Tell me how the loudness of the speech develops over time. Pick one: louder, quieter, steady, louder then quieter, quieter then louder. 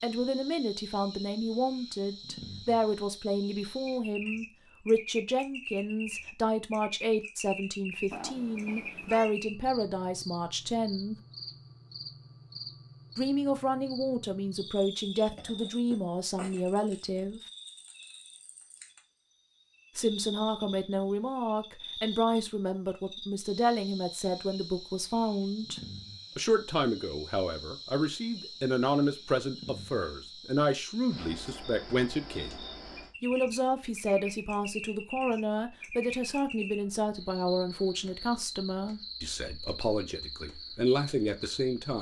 steady.